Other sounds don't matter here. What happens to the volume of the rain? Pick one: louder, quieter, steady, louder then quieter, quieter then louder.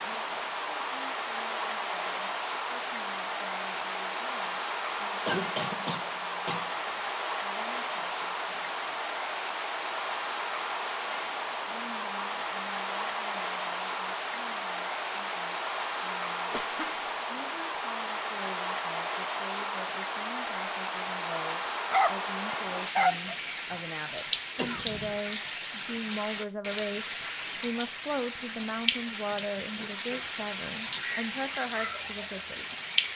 steady.